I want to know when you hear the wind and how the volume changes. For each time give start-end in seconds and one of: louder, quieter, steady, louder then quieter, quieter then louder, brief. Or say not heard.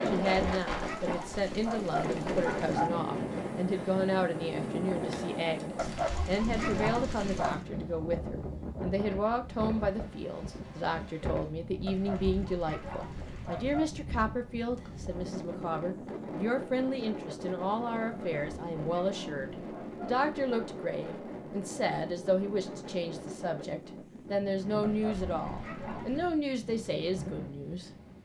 0.0-28.1 quieter.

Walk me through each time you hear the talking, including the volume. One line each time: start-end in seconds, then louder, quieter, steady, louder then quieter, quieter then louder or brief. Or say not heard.
0.0-27.9 steady.